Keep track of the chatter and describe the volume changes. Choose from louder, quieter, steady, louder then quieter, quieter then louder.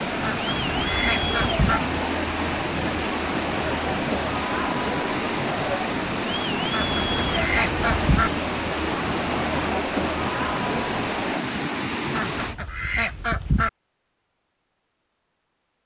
steady.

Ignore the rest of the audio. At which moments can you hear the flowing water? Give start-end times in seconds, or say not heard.
0.0-12.6.